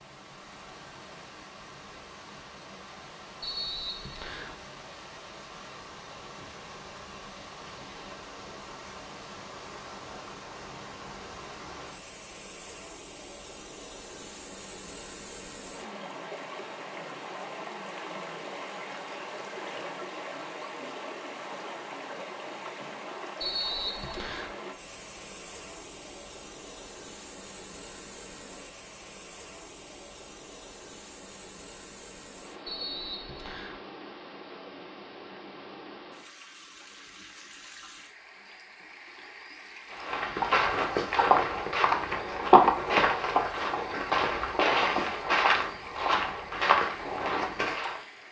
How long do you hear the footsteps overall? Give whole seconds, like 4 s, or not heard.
8 s.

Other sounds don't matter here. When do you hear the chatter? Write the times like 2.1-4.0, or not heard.
not heard.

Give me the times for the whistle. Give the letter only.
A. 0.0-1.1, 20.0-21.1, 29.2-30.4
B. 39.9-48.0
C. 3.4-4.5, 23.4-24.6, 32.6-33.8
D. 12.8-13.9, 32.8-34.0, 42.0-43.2
C.